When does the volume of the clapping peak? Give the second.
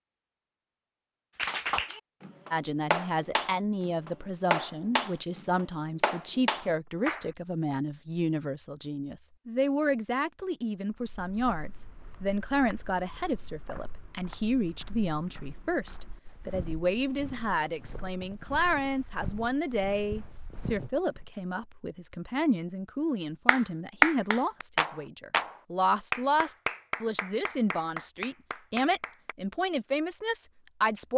24 s.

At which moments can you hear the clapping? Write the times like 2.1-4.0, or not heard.
1.4-7.2, 23.4-29.4.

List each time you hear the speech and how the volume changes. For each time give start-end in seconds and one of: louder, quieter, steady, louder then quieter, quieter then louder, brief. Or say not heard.
2.5-31.1 steady.